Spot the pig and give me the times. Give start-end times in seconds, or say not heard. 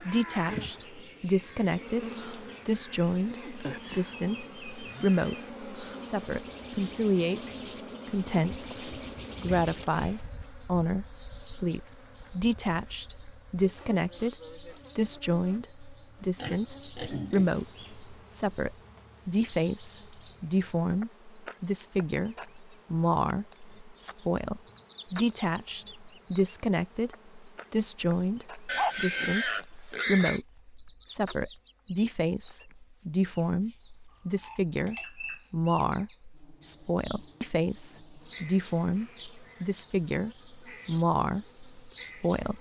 8.5-10.3, 16.4-18.1, 28.6-30.4.